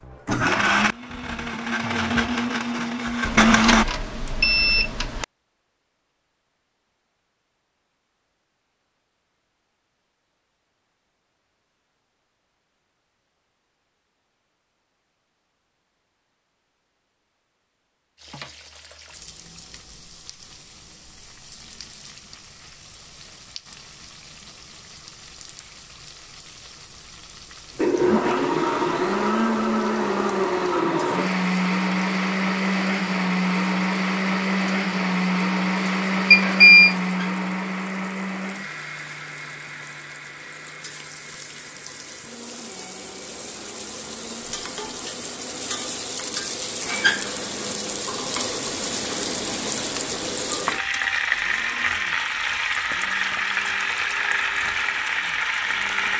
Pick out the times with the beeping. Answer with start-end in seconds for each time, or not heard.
3.2-5.2, 36.3-37.0.